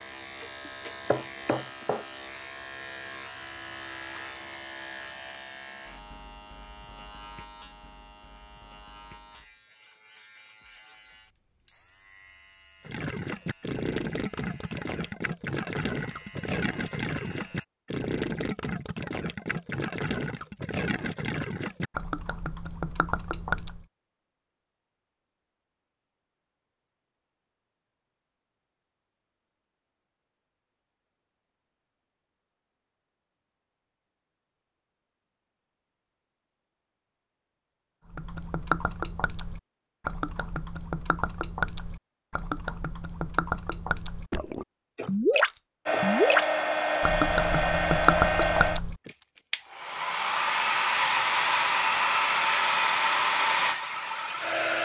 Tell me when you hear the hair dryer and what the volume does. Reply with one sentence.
You can hear the hair dryer from 45.9 to 54.8 s, at a steady volume.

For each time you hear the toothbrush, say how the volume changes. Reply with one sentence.
You can't hear the toothbrush here.